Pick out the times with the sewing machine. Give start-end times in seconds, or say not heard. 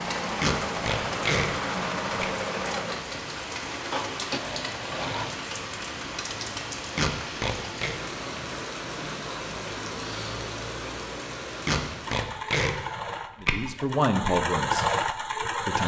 0.0-5.3, 12.0-15.8.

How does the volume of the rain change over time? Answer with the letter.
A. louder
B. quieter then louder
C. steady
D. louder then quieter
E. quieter
C.